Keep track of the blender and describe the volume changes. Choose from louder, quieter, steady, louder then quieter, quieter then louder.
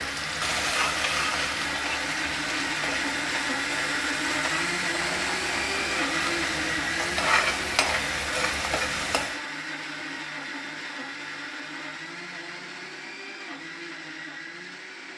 quieter.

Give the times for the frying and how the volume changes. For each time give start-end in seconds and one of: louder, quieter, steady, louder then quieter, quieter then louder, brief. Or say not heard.
0.0-9.4 quieter then louder.